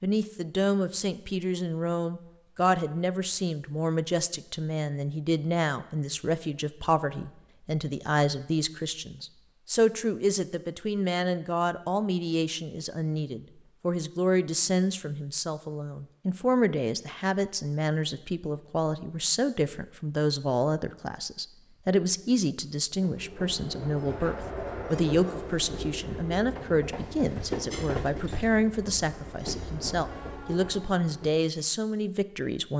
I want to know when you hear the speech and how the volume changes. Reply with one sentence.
You can hear the speech from 0.0 to 32.7 s, at a steady volume.